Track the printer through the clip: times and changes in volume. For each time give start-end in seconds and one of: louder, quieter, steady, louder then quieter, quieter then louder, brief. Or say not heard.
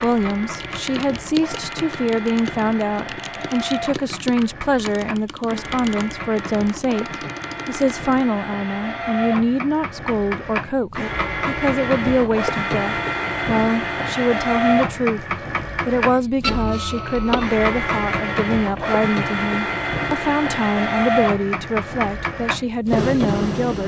0.0-23.8 louder.